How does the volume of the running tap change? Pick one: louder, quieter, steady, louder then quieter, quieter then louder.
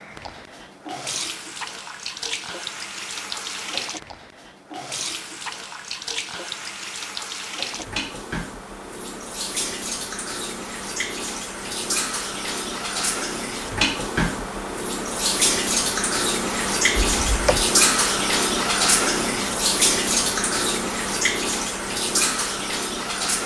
louder.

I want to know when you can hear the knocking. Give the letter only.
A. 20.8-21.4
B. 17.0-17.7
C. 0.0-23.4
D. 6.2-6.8
B.